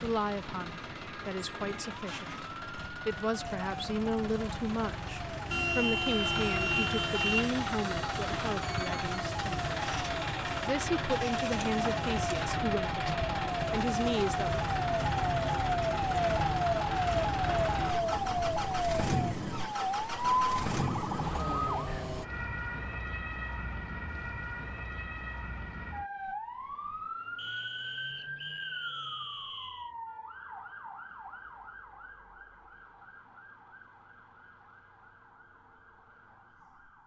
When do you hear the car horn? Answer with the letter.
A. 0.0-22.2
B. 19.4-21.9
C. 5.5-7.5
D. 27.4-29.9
C.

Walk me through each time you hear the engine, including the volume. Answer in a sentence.
You can hear the engine from 0.0 to 22.2 s, getting louder.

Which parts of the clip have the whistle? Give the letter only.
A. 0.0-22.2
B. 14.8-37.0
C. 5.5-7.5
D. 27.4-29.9
D.